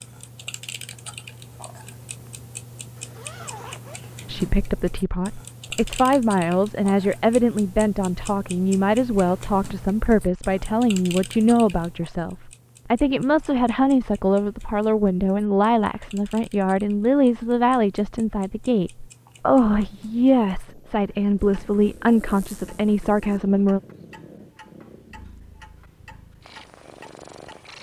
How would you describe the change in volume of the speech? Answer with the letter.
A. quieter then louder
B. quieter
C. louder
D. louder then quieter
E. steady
E.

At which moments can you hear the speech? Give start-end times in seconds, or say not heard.
4.2-23.8.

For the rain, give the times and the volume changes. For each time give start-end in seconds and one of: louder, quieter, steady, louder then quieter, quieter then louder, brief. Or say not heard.
not heard.